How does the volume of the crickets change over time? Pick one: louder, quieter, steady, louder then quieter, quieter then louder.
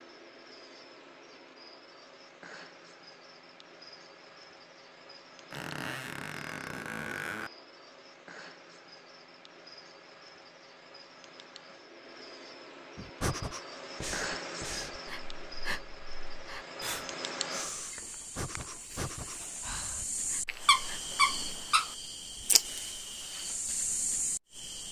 louder.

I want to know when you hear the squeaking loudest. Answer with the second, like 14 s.
21 s.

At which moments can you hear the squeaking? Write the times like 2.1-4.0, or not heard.
5.5-7.5, 20.4-21.9.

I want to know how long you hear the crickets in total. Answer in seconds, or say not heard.
25 s.